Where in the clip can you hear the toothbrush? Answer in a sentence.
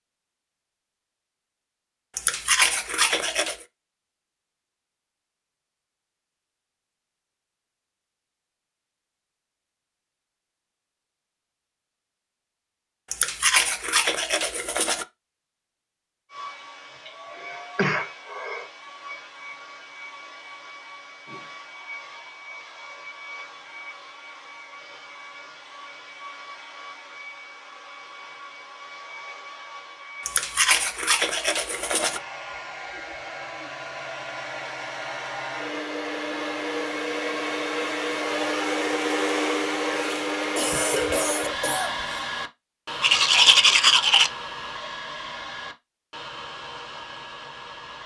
The toothbrush can be heard from 2.1 to 3.5 s, from 13.1 to 15.1 s, from 30.2 to 32.2 s and from 43.0 to 44.3 s.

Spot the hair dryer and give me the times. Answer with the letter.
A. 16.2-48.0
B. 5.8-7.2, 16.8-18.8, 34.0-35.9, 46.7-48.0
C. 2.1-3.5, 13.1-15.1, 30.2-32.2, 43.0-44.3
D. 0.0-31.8
A.